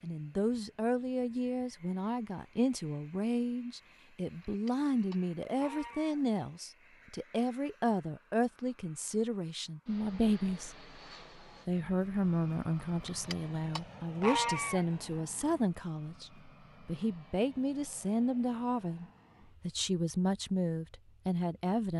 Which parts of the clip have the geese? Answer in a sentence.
The geese can be heard from 4.2 to 6.2 s and from 12.9 to 14.8 s.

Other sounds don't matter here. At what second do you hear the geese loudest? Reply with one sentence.
The volume of the geese peaks at 14 seconds.